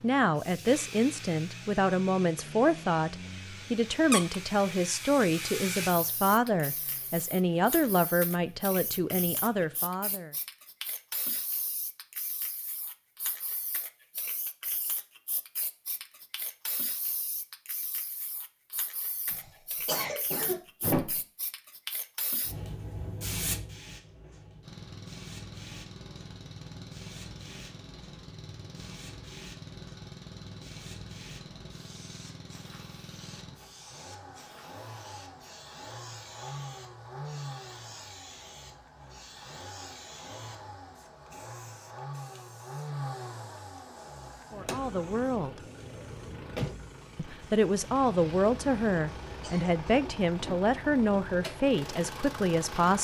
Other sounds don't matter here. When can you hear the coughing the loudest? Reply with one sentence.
The volume of the coughing peaks at 21 seconds.